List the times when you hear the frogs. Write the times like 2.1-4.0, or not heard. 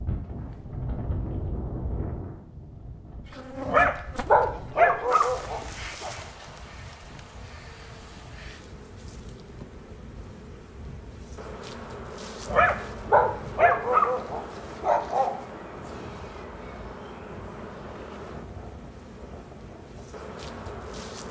not heard.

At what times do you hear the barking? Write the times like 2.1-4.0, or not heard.
3.6-6.1, 12.4-15.3.